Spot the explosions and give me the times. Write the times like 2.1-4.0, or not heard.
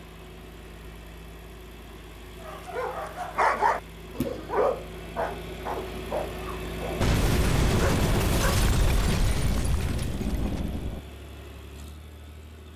7.0-11.0.